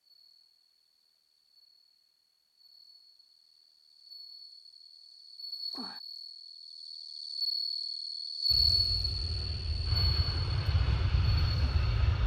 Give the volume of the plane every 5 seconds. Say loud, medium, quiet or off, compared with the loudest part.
off, medium, loud.